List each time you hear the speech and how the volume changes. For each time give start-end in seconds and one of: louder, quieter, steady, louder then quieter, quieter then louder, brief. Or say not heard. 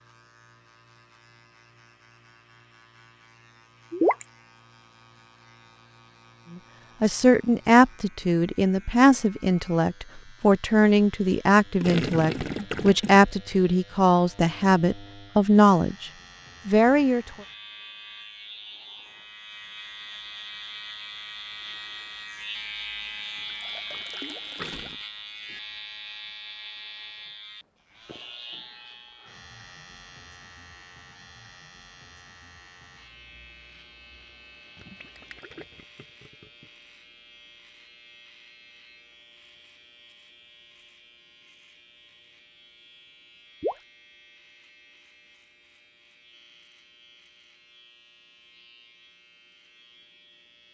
7.0-17.2 steady.